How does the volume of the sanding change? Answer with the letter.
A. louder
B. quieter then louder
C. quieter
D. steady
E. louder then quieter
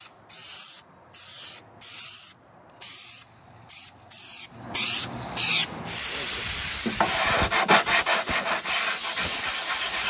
E.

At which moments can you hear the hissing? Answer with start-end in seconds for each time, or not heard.
0.0-10.0.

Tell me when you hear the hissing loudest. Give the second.
5 s.